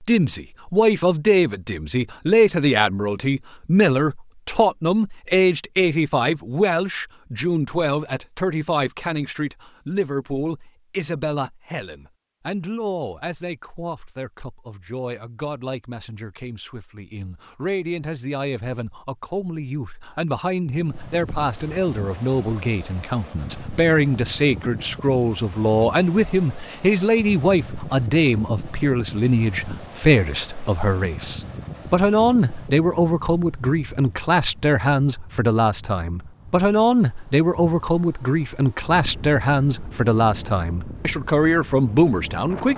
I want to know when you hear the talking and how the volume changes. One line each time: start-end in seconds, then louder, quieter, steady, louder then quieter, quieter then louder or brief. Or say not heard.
0.0-42.7 quieter then louder.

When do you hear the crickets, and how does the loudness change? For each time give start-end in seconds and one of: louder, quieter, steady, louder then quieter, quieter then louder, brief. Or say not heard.
not heard.